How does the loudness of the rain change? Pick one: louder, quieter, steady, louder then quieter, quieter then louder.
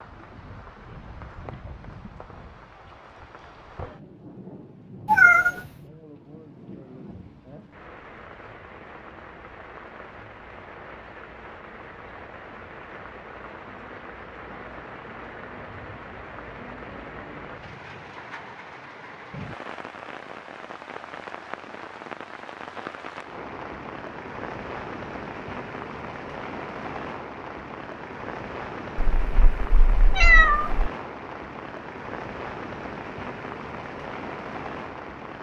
louder.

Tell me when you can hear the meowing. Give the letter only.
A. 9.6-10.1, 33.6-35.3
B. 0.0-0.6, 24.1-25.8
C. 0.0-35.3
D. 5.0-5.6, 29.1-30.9
D.